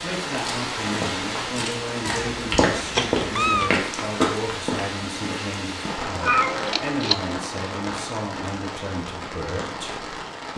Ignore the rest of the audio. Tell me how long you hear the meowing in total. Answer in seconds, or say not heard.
3 s.